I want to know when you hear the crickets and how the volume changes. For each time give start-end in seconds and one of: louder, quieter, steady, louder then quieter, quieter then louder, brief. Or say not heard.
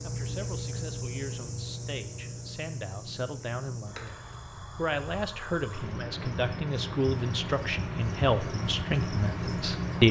0.0-10.0 quieter then louder.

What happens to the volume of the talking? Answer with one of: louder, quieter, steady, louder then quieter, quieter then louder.
louder.